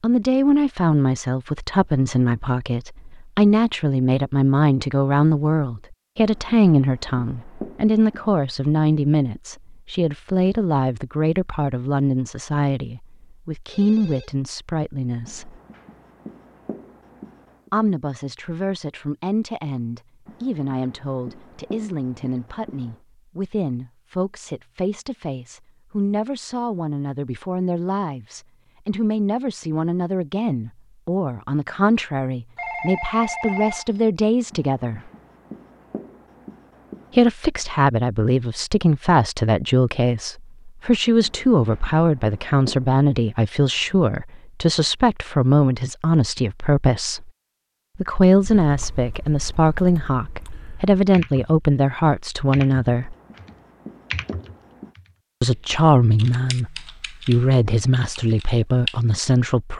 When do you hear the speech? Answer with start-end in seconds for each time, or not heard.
0.0-15.6, 17.7-35.1, 37.1-47.3, 48.0-53.1, 55.4-59.7.